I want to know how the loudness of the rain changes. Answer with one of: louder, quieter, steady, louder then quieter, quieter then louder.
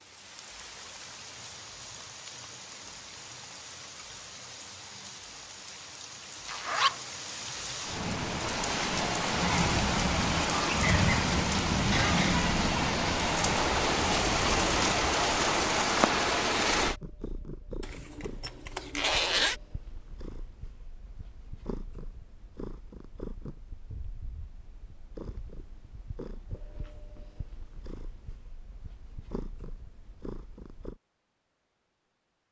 louder.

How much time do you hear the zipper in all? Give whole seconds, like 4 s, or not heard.
2 s.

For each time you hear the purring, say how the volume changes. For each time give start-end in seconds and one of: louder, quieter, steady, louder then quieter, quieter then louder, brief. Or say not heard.
16.6-31.0 steady.